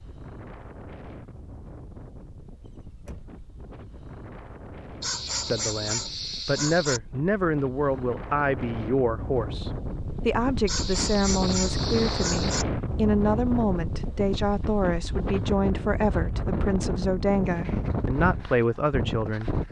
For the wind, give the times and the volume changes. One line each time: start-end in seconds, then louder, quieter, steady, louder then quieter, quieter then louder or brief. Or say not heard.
0.0-19.6 louder.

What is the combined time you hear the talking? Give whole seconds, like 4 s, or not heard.
14 s.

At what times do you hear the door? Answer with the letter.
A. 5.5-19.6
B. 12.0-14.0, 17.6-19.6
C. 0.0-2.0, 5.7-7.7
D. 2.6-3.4
D.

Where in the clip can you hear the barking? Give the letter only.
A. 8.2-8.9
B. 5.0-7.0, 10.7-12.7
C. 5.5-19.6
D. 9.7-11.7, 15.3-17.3
B.